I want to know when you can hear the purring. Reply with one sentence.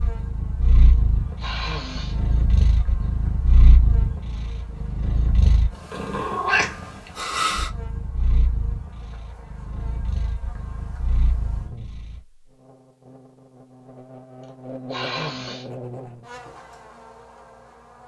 You can hear the purring from 0.0 to 12.2 s.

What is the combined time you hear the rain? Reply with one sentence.
The rain can't be heard in this clip.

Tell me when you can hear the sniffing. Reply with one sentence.
The sniffing can be heard from 1.4 to 2.1 s and from 14.9 to 15.7 s.